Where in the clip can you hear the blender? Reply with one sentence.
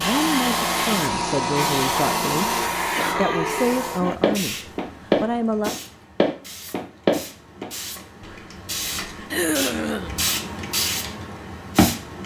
The blender can be heard from 0.0 to 2.7 s.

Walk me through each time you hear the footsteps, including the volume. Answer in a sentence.
The footsteps can be heard from 4.2 to 9.2 s, getting quieter.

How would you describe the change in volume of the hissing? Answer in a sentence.
The volume of the hissing goes down, then up.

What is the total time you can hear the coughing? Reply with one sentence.
You can hear the coughing for 2 seconds altogether.